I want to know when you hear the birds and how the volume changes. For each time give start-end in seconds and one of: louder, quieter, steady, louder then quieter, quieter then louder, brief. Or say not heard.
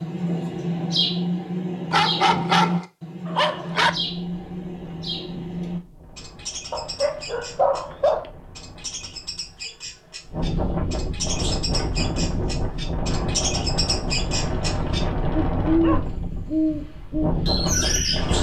0.0-18.3 quieter then louder.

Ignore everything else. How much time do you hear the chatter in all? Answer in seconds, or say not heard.
not heard.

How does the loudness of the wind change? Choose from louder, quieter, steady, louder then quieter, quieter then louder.
louder.